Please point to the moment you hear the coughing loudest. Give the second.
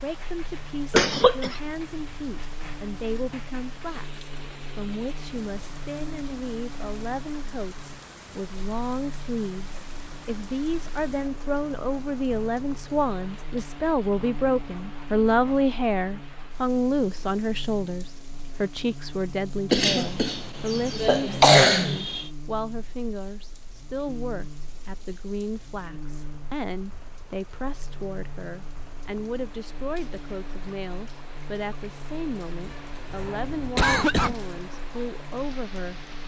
22 s.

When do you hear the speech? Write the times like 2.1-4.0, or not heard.
0.0-36.0.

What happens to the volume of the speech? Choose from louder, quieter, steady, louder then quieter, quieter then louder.
louder then quieter.